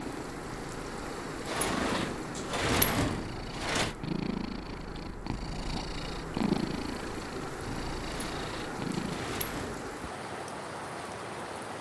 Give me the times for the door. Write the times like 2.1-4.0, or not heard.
1.4-4.0, 8.1-9.9.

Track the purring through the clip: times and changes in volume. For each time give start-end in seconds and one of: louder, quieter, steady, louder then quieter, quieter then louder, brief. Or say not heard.
0.0-9.2 louder then quieter.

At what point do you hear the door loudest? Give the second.
3 s.